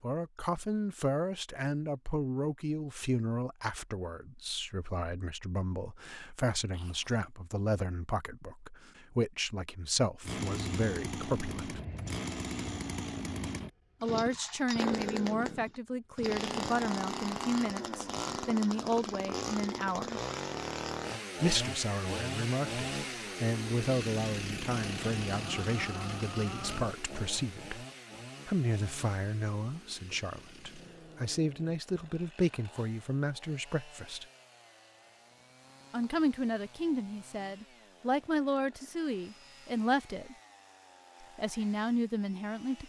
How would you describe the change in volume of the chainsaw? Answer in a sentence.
The volume of the chainsaw goes down.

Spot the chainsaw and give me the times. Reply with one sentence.
The chainsaw can be heard from 10.2 to 42.8 s.